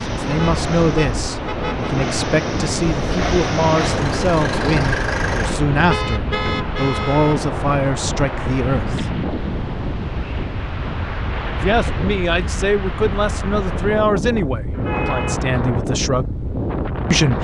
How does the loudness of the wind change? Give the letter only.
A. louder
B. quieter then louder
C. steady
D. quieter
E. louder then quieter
C.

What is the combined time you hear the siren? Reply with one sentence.
You can't hear the siren here.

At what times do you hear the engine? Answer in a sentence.
The engine can be heard from 0.0 to 5.5 s.